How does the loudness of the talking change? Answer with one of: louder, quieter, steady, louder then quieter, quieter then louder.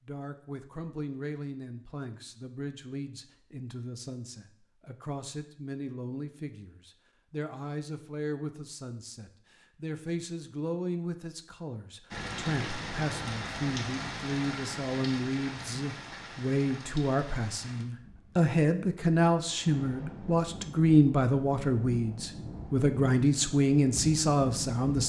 louder.